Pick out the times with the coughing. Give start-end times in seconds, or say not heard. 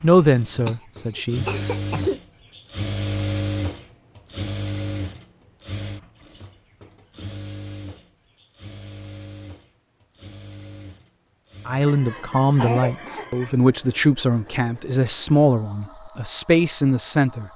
0.7-2.2, 11.8-13.6.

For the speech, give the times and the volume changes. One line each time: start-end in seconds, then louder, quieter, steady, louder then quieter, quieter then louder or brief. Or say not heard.
0.0-1.4 brief
11.7-17.5 steady.